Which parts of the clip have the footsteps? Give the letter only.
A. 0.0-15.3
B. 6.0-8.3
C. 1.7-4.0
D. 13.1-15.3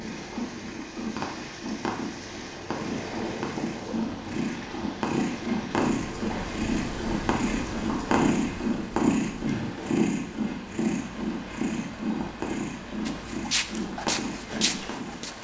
D.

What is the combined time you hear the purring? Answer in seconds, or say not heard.
15 s.